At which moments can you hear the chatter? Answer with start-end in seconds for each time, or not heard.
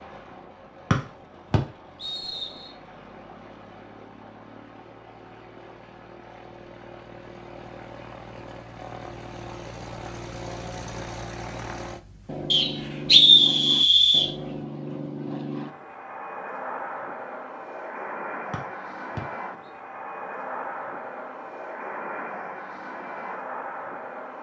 not heard.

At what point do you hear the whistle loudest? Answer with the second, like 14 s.
13 s.